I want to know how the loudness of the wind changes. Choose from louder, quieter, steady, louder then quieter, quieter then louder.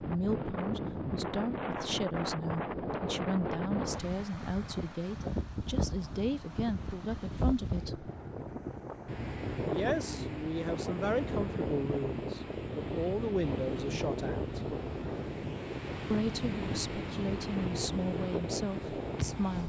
steady.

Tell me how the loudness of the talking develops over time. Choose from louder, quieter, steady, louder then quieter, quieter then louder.
steady.